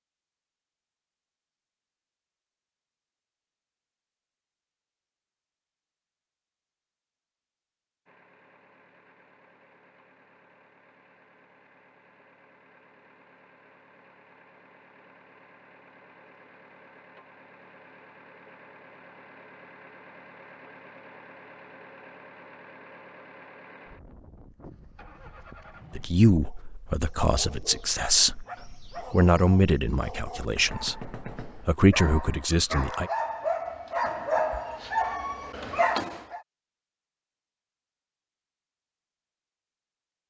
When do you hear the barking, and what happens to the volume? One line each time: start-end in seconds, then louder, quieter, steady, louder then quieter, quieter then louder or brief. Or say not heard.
26.5-36.4 louder.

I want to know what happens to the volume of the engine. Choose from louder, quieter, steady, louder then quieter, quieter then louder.
louder.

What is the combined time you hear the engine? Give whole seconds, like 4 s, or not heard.
18 s.